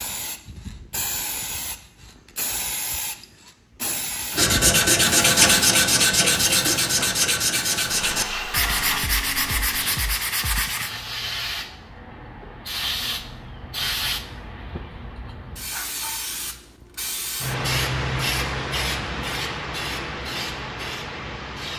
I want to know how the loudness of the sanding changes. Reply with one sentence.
The volume of the sanding goes down.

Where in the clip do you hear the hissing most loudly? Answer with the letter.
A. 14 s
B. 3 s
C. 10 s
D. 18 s
D.